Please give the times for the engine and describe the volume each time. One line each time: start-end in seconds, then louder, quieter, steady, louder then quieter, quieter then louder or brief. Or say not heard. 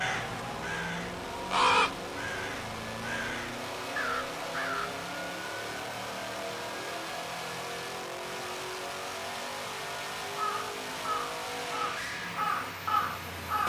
0.0-13.6 steady.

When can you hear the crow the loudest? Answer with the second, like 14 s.
2 s.